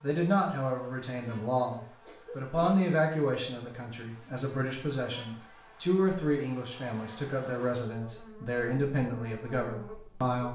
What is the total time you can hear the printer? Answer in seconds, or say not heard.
not heard.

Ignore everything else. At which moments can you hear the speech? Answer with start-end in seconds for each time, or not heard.
0.0-10.4.